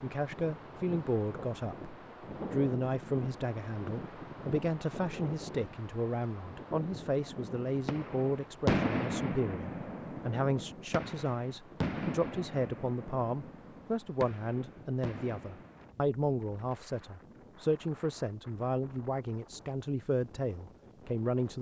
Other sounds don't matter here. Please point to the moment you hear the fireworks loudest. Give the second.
9 s.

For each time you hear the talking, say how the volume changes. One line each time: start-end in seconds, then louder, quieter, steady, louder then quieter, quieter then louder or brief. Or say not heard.
0.0-21.5 steady.